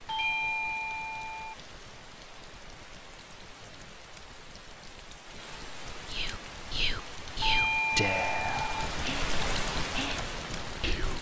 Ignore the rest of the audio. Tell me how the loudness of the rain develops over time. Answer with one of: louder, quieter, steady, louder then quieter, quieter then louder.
louder.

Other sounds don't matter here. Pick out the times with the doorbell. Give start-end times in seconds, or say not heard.
0.1-1.6, 7.4-8.9.